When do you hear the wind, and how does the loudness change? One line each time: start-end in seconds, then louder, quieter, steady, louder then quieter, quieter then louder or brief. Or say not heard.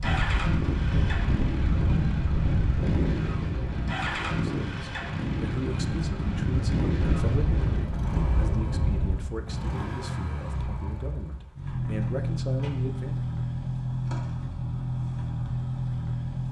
0.0-9.2 quieter then louder.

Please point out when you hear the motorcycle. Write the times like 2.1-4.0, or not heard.
0.0-16.4.